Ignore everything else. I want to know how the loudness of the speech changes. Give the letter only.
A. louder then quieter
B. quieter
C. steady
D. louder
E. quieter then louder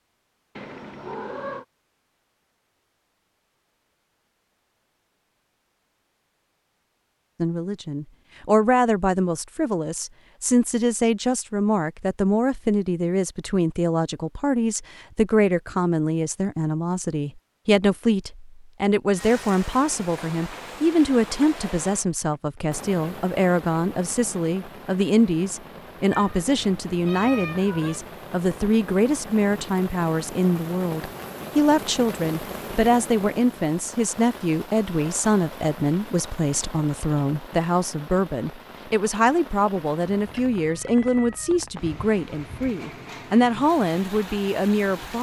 C.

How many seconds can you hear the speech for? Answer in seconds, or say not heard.
38 s.